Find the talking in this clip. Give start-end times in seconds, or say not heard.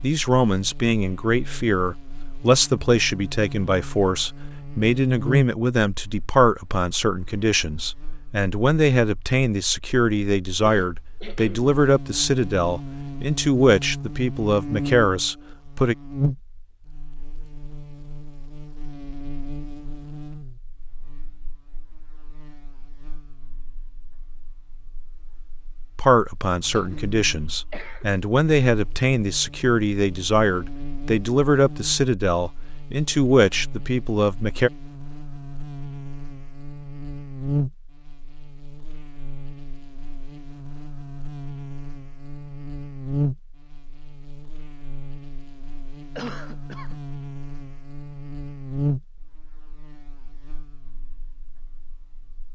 0.0-15.9, 25.9-34.7.